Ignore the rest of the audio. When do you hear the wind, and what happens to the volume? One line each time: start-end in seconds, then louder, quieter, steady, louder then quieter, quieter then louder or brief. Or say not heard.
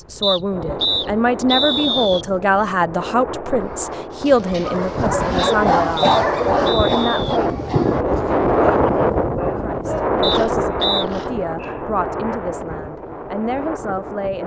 0.0-14.4 louder then quieter.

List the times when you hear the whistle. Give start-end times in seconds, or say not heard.
0.2-2.2, 5.3-7.4, 10.2-11.1.